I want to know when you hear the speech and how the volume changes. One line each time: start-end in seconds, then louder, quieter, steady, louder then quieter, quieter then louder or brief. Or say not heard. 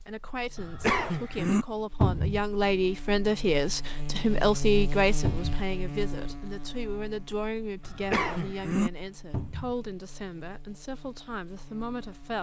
0.0-12.3 louder then quieter.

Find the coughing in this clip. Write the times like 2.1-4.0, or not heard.
0.6-1.6, 7.8-8.9.